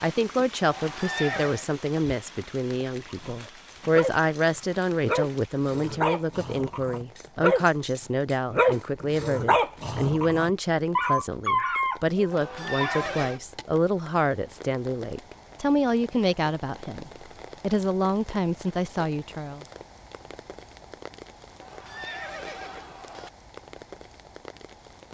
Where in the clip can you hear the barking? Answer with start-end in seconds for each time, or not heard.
3.0-13.1.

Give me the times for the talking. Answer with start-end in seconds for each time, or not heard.
0.0-19.6.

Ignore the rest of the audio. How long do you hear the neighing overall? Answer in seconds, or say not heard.
4 s.